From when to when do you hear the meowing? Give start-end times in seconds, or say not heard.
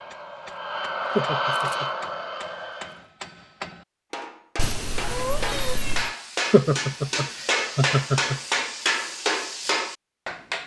4.5-6.1.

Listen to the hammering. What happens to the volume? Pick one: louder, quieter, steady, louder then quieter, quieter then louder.
louder.